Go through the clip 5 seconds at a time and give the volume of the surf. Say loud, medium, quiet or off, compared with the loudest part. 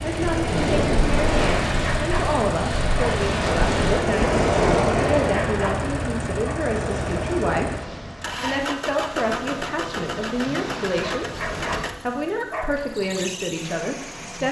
loud, medium, medium.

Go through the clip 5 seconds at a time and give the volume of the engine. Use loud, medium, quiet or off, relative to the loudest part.
loud, loud, medium.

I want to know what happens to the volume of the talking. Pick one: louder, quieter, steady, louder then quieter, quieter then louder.
steady.